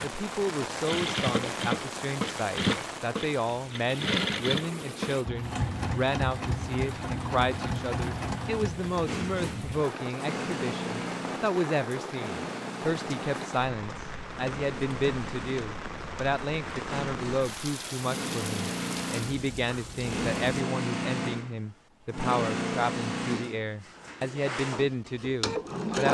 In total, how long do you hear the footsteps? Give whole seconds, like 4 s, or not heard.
not heard.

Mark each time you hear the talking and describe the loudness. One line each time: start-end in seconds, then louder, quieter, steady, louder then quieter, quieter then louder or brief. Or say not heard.
0.0-26.1 steady.